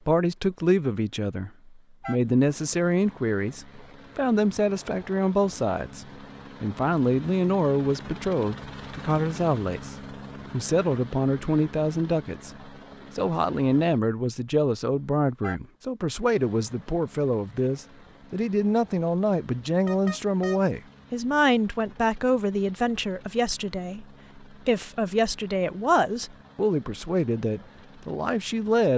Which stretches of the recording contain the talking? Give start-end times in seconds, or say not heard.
0.1-28.9.